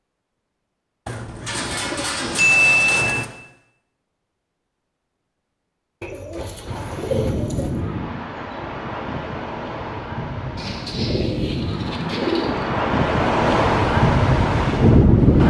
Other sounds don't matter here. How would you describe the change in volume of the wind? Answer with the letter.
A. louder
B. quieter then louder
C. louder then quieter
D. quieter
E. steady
A.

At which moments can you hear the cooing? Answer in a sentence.
The cooing can be heard from 1.1 to 3.2 s, from 6.0 to 7.8 s and from 10.6 to 12.7 s.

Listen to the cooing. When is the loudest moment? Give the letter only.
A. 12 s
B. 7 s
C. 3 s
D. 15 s
C.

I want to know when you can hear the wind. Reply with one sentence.
You can hear the wind from 6.7 to 15.4 s.